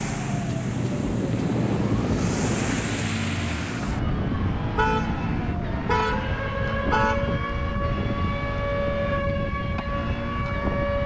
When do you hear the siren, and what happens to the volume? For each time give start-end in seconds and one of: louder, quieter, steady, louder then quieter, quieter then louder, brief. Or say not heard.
0.0-11.0 steady.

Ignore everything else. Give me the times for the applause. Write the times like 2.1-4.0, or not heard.
not heard.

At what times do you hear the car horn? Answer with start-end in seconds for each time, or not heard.
4.8-7.3.